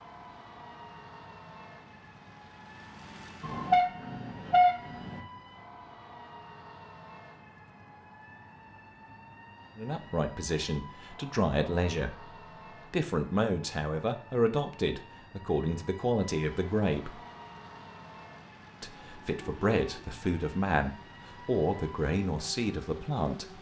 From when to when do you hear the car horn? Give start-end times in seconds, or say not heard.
3.4-5.2, 19.0-20.1.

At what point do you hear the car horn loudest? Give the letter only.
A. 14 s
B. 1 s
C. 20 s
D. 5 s
D.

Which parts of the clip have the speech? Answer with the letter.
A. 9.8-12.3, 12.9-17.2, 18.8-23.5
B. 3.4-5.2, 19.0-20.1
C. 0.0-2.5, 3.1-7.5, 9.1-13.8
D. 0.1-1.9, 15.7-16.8
A.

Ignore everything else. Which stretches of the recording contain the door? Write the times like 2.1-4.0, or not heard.
not heard.